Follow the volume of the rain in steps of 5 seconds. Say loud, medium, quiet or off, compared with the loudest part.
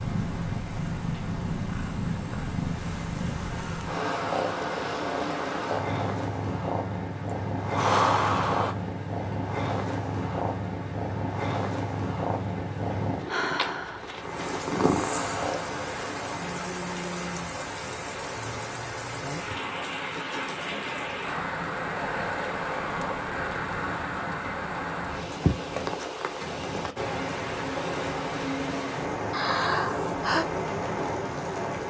quiet, quiet, medium, loud, loud, loud, loud.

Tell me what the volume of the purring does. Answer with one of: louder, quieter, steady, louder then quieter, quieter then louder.
steady.